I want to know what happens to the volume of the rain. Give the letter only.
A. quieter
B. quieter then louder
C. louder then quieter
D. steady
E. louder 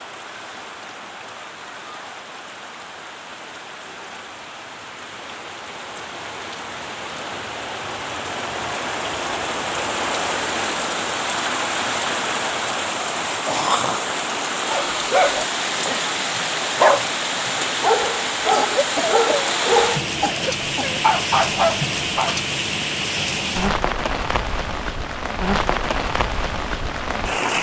E.